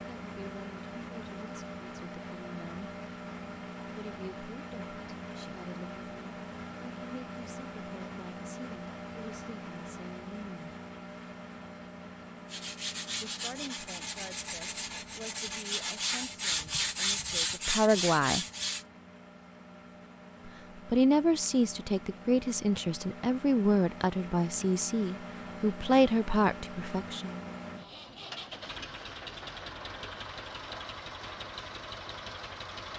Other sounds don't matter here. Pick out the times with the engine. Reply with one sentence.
The engine can be heard from 0.0 to 32.9 s.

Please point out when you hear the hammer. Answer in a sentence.
The hammer can't be heard in this clip.